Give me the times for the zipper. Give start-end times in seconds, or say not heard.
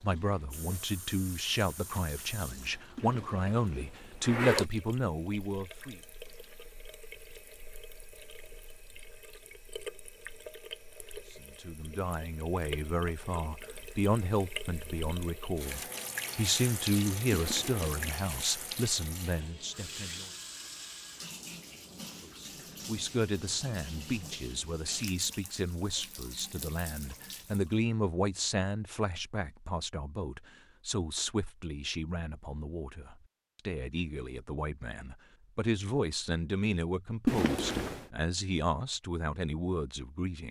3.0-4.7, 17.3-18.1, 37.2-38.0.